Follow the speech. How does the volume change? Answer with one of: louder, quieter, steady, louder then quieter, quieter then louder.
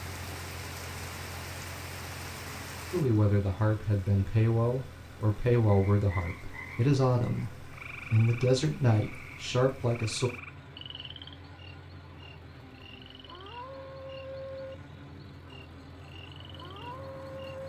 steady.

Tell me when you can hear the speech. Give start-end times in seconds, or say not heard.
2.9-10.3.